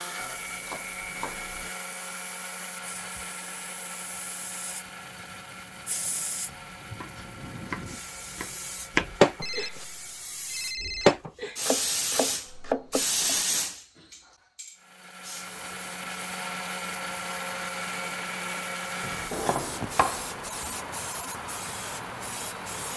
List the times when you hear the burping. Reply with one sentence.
You can't hear the burping here.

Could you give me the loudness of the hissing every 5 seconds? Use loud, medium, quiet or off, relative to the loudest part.
quiet, loud, loud, quiet, medium.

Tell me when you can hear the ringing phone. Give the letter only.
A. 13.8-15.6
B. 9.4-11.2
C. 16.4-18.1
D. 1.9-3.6
B.